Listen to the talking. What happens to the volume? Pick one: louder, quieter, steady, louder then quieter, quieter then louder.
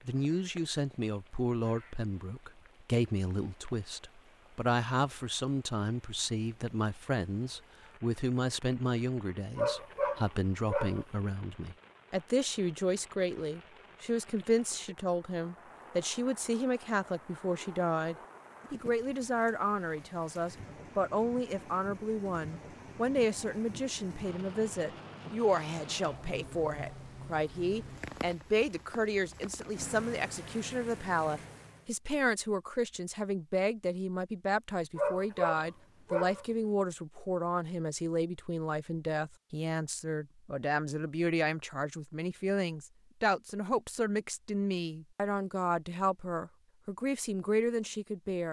steady.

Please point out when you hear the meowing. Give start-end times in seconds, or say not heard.
not heard.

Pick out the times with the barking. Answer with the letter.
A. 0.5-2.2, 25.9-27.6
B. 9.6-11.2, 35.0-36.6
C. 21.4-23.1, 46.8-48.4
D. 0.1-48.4
B.